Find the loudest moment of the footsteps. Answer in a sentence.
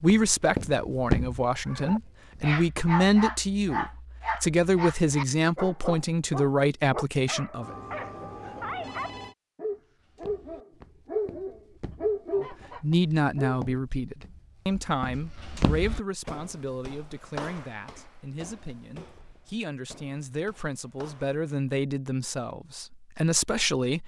The volume of the footsteps peaks at 1 second.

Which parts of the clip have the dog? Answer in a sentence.
The dog can be heard from 1.6 to 13.6 s.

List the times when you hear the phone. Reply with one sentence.
You can hear the phone from 7.6 to 9.3 s.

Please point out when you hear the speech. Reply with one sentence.
You can hear the speech from 0.0 to 7.8 s and from 12.3 to 24.0 s.